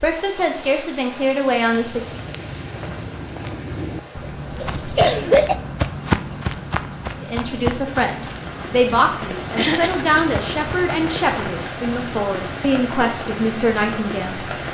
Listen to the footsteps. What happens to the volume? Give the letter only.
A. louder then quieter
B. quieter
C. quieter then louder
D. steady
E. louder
A.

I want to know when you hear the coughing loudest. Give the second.
5 s.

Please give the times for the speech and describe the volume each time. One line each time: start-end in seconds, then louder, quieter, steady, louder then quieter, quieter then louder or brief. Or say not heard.
0.0-2.2 brief
7.2-14.6 steady.